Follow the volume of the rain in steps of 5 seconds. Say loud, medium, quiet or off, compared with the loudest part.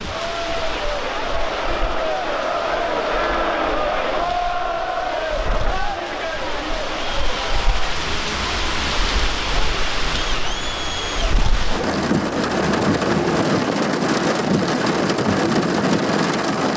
quiet, medium, loud, loud.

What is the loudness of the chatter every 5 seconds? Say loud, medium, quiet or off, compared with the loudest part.
loud, medium, medium, off.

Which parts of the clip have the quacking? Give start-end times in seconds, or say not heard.
not heard.